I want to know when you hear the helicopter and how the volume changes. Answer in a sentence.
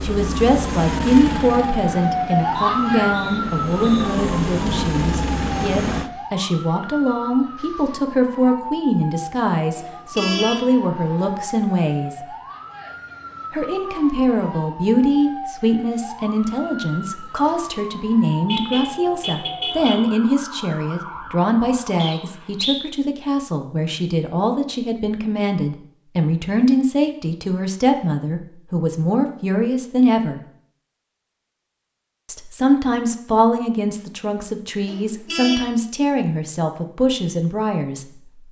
You can hear the helicopter from 0.0 to 6.1 s, getting quieter then louder.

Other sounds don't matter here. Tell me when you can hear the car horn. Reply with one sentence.
You can hear the car horn from 9.7 to 10.7 s, from 18.4 to 20.0 s and from 34.9 to 35.6 s.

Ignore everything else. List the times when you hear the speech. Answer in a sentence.
You can hear the speech from 0.0 to 12.3 s, from 13.5 to 30.4 s and from 32.2 to 38.4 s.